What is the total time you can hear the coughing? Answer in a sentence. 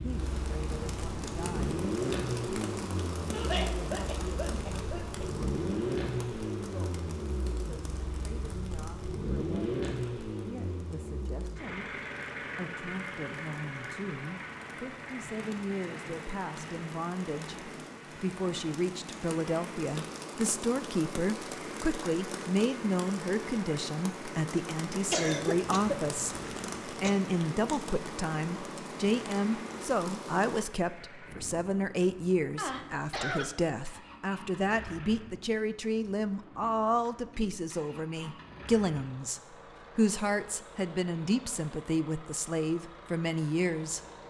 The coughing can be heard for 5 seconds in total.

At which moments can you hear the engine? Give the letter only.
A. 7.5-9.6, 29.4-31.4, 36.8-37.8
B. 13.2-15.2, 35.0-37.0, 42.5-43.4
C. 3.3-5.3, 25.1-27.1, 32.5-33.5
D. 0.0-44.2
D.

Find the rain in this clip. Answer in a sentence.
The rain can be heard from 0.0 to 30.6 s.